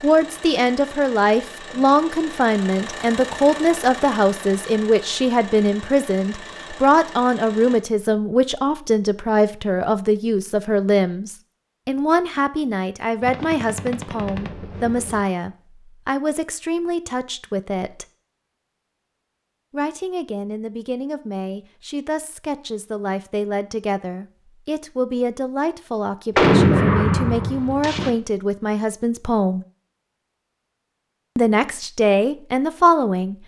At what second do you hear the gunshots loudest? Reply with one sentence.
The loudest moment of the gunshots is at 27 seconds.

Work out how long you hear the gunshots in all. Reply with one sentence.
The gunshots can be heard for 4 seconds in total.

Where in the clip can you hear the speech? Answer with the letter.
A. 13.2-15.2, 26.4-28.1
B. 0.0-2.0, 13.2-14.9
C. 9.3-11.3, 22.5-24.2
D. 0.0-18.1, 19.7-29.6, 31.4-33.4
D.